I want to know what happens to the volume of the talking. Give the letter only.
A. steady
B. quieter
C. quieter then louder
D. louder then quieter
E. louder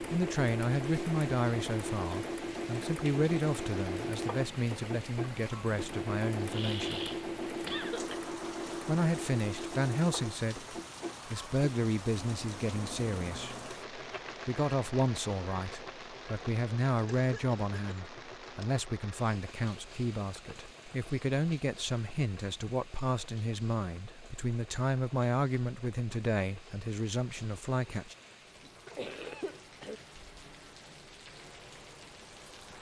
A.